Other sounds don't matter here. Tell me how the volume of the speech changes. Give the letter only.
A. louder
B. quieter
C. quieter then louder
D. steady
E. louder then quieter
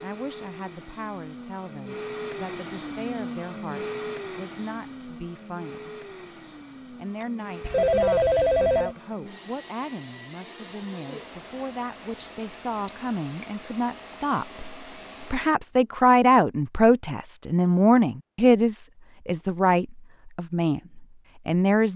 A.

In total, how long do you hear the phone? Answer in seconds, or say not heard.
2 s.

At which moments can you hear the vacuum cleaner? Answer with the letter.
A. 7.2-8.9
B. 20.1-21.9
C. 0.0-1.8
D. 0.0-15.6
D.